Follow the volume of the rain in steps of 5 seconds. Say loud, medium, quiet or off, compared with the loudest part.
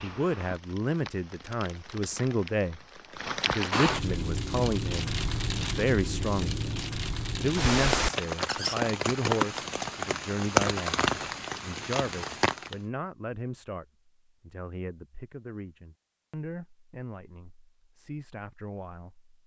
medium, loud, loud, off.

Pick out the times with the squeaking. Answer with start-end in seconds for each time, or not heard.
8.4-8.8.